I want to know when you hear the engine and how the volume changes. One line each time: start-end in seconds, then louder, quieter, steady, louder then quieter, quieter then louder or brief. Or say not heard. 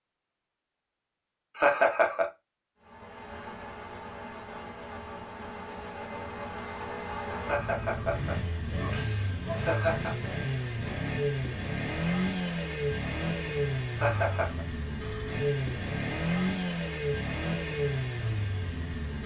2.8-19.2 louder.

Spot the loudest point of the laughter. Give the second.
2 s.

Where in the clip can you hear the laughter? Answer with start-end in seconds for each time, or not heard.
1.6-2.2, 7.4-10.2, 13.9-14.7.